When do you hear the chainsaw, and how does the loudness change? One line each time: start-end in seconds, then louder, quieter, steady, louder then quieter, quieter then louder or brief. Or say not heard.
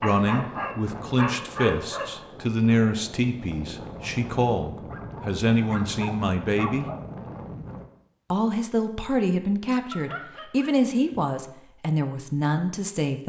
not heard.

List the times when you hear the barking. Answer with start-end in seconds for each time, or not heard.
0.0-2.1, 4.9-7.0, 9.9-11.3.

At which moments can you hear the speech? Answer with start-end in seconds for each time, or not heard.
0.0-6.9, 8.3-13.2.